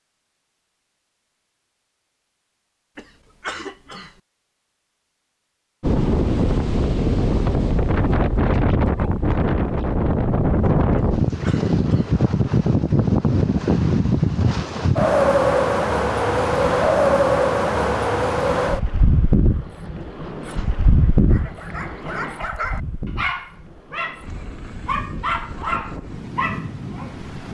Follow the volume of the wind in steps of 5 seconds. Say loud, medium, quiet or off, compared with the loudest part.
off, loud, loud, loud, medium, quiet.